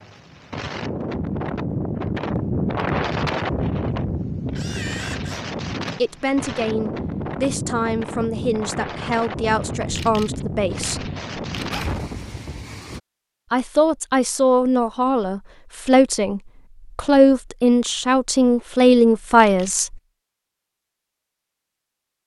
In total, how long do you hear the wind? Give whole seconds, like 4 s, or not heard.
13 s.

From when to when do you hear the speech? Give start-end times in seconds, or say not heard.
6.0-11.1, 13.5-19.9.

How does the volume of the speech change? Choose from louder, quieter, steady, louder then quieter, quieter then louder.
louder.